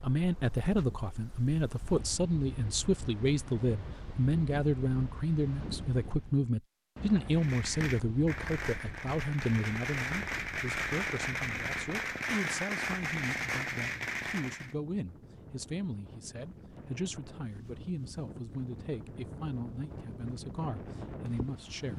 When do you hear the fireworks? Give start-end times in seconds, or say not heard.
7.3-14.8.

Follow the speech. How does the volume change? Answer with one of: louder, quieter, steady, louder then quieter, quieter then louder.
quieter.